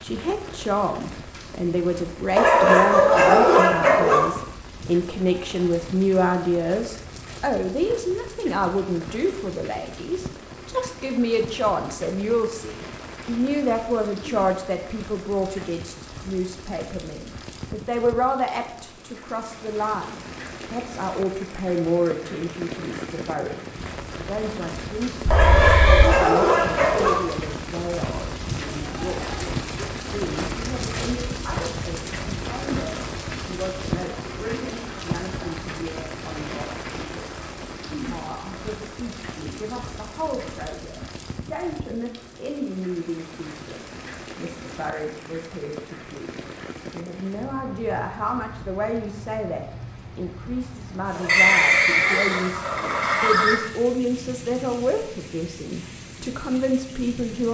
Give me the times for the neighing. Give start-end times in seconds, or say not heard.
25.2-26.1, 51.2-53.6.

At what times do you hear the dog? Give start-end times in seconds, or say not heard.
2.4-4.3, 25.3-27.2, 51.1-52.9.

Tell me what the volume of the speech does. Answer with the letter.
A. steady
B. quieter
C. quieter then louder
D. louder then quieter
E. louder
C.